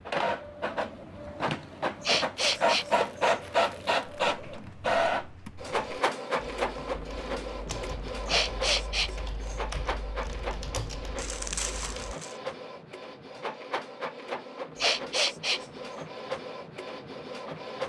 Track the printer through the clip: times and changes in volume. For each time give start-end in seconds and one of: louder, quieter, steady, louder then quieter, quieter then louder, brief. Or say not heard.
0.0-17.8 quieter.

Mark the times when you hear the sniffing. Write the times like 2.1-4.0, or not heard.
2.0-3.3, 8.2-9.6, 14.8-15.6.